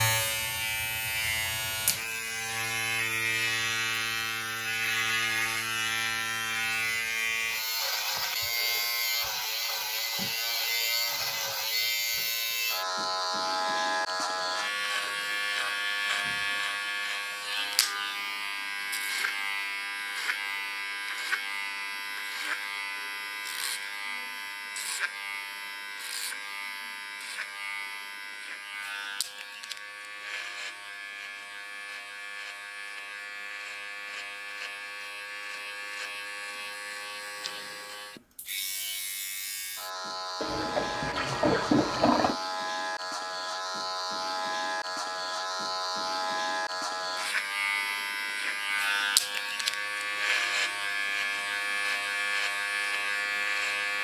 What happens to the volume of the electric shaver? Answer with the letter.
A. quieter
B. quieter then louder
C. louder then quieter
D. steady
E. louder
B.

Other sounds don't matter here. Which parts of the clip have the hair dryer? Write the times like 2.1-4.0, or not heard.
not heard.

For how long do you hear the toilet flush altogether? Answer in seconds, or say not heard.
2 s.